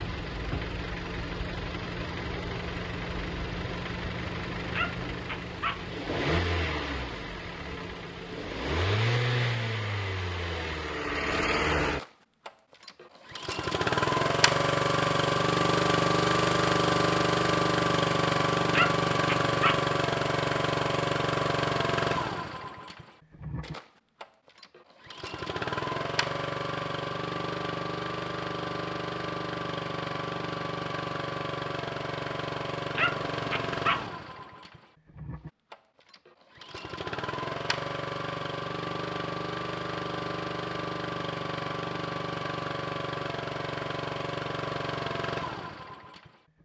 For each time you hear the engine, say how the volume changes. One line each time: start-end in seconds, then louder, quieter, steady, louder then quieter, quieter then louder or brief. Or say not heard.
0.0-46.6 louder then quieter.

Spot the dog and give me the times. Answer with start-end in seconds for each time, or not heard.
4.7-5.8, 18.7-19.9, 33.0-34.1.